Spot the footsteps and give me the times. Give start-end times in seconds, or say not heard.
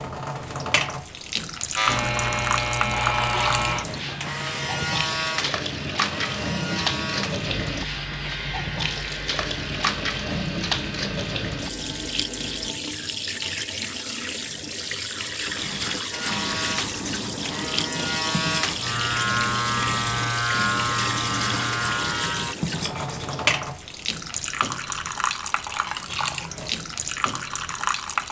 not heard.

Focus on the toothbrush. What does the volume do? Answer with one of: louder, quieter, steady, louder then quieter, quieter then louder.
steady.